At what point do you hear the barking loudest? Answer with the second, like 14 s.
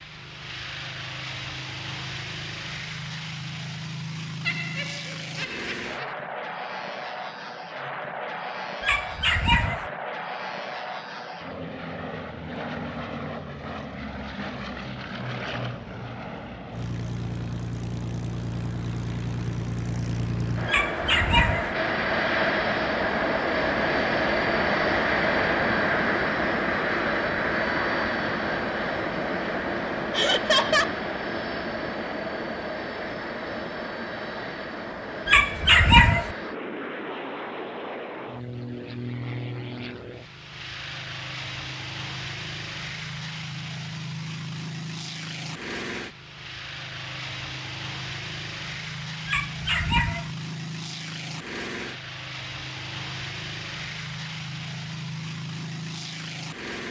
36 s.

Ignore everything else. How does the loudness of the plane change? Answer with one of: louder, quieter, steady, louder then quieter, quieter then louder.
louder then quieter.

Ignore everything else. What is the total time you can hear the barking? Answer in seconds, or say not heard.
4 s.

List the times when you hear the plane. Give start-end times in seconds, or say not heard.
0.0-56.8.